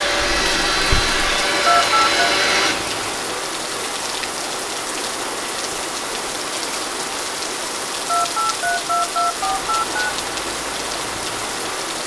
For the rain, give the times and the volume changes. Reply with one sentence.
You can hear the rain from 0.0 to 12.0 s, at a steady volume.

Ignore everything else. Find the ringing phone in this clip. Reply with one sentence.
The ringing phone can be heard from 1.6 to 2.2 s and from 8.1 to 9.9 s.